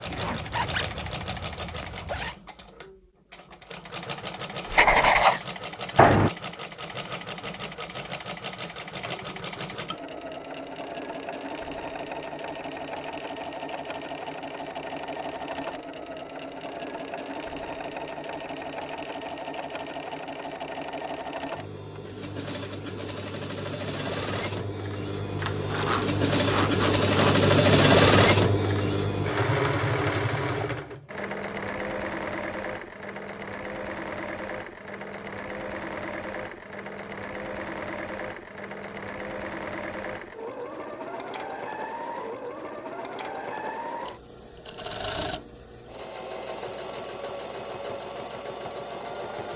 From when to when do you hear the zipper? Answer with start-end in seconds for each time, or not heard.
0.1-2.4, 25.4-27.4.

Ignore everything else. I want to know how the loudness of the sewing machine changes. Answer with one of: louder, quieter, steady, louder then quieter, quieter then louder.
louder then quieter.